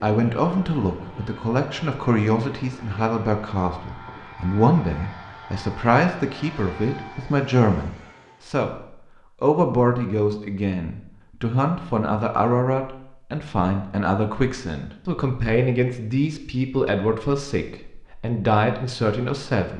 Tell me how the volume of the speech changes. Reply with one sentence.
The volume of the speech stays about the same.